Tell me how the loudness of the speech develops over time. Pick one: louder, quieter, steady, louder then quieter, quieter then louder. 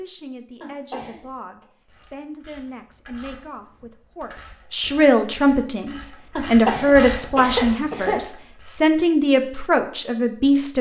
louder.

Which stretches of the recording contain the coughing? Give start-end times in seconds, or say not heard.
0.6-1.6, 6.3-8.2.